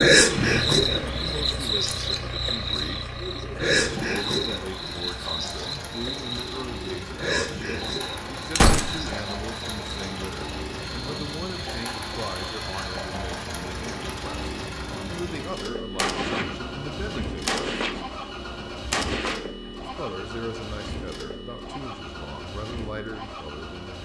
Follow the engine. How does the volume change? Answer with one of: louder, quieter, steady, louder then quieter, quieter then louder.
steady.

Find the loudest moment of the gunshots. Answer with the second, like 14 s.
9 s.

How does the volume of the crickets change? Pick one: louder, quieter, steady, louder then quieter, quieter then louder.
quieter.